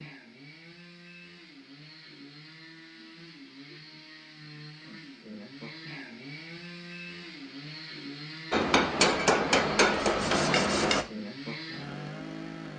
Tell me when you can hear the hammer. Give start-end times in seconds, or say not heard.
8.5-11.1.